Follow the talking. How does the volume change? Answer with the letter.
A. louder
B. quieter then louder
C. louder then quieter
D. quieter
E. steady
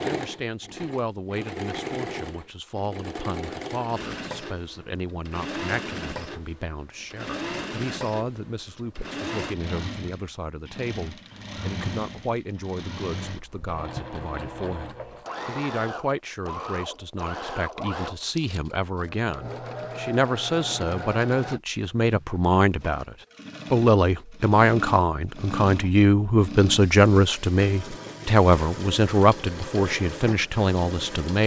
A.